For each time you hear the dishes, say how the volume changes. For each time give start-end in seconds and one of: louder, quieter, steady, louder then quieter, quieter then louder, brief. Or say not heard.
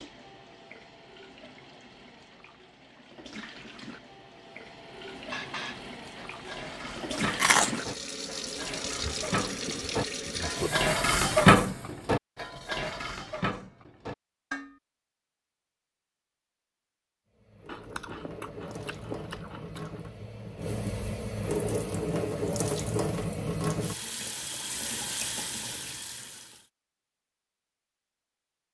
5.3-14.8 louder then quieter.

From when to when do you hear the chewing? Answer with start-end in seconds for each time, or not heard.
6.5-7.8, 17.6-20.0.